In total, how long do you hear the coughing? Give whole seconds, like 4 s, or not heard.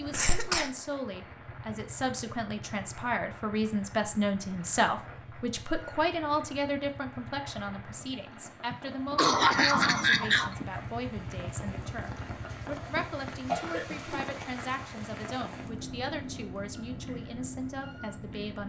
3 s.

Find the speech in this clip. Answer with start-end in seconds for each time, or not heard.
0.0-18.6.